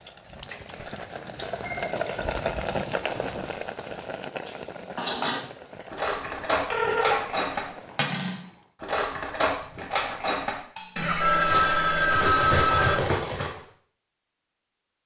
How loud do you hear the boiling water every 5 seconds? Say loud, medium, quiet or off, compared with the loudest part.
loud, quiet, off.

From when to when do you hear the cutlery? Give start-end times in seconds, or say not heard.
3.0-13.6.